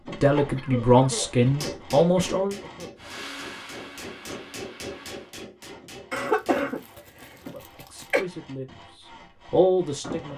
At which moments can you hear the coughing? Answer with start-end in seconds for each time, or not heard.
0.6-2.9, 6.1-8.2.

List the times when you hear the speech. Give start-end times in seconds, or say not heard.
0.2-2.5, 7.5-10.3.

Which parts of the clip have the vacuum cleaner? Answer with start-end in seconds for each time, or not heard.
3.0-5.3.